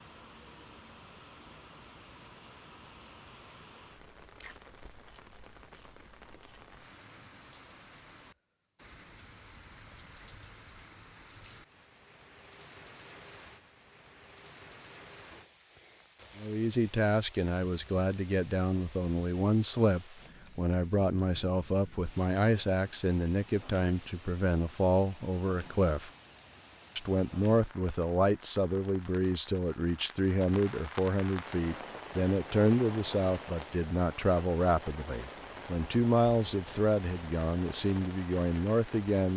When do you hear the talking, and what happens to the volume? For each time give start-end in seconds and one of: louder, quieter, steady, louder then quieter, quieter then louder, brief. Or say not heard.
16.4-26.1 steady
26.9-39.3 steady.